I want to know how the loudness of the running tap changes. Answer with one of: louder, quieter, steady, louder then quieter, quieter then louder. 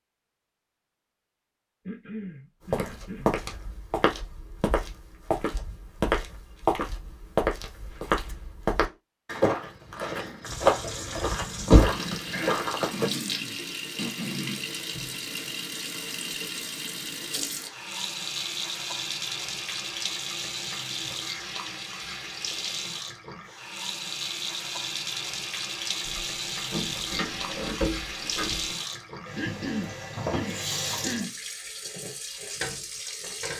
steady.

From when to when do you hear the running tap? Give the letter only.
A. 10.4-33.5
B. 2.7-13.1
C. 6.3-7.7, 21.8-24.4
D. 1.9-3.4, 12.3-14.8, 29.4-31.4
A.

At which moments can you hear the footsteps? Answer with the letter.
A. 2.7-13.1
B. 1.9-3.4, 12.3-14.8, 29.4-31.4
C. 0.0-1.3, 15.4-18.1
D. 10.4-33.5
A.